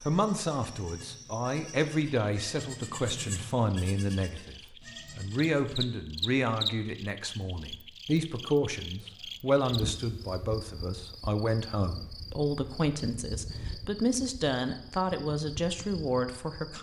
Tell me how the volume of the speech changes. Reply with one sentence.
The loudness of the speech stays about the same.